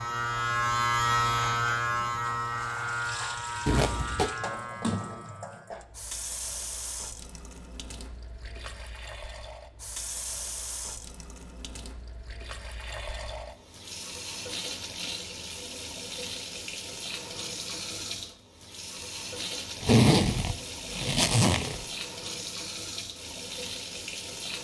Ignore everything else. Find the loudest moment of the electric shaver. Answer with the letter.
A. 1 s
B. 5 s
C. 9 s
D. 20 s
A.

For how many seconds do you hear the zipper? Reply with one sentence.
The zipper can be heard for 3 seconds in total.